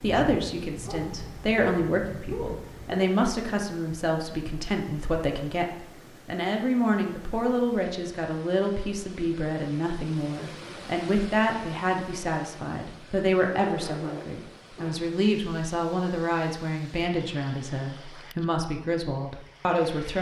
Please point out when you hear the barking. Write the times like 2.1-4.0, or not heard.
0.0-3.0, 13.6-15.0.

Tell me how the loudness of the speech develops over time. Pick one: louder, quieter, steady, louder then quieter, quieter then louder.
steady.